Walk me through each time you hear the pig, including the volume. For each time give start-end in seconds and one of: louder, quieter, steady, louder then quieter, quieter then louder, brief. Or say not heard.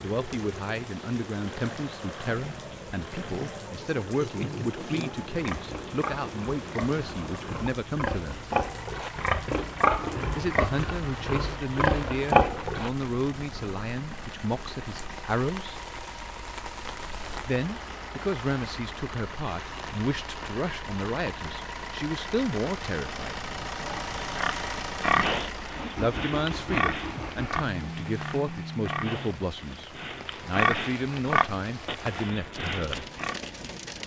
4.0-12.9 louder
23.8-33.4 quieter then louder.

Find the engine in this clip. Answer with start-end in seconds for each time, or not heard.
0.0-29.6.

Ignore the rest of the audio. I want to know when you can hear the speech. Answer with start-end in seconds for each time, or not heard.
0.0-8.4, 10.3-15.8, 17.4-23.5, 25.9-33.1.